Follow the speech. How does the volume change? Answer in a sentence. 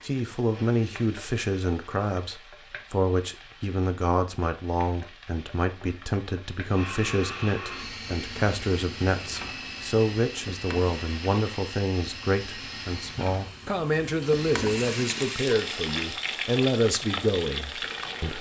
The loudness of the speech stays about the same.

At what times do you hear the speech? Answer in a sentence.
You can hear the speech from 0.0 to 18.3 s.